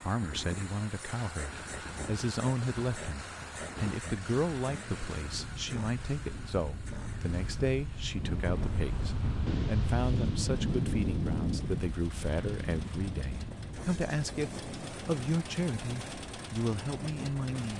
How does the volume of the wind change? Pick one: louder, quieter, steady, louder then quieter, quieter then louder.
louder then quieter.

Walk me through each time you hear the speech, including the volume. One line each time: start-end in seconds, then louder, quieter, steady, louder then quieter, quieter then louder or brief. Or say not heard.
0.0-17.7 steady.